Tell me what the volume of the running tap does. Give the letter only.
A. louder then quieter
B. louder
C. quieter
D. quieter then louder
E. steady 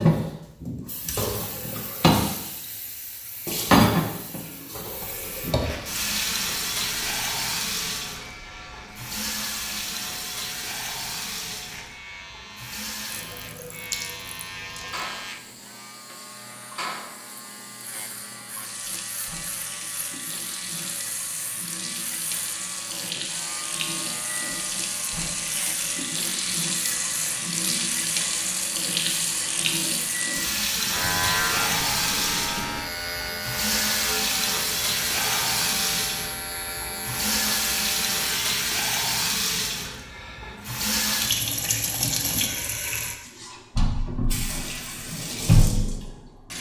D.